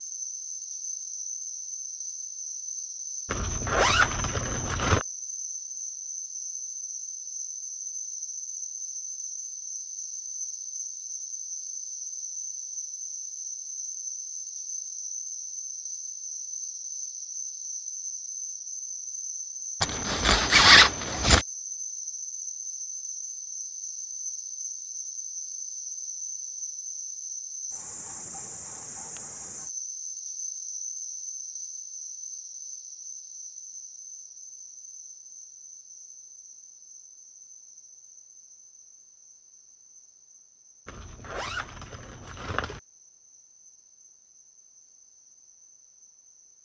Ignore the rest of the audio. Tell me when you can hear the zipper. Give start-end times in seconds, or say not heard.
3.2-5.0, 19.8-21.4, 40.9-42.8.